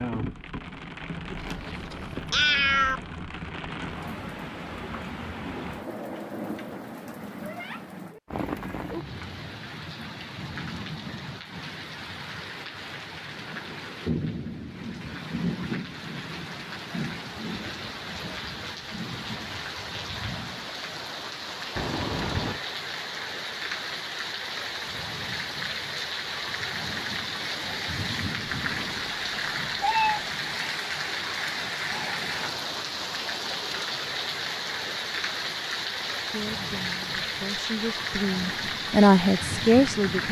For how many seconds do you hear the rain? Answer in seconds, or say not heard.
40 s.